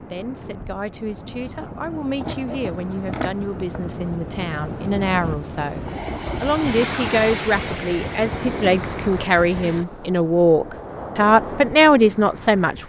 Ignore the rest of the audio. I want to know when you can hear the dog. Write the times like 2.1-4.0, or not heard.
2.2-3.8.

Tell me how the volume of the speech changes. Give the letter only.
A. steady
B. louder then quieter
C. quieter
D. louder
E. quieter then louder
D.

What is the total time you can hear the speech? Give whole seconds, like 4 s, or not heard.
13 s.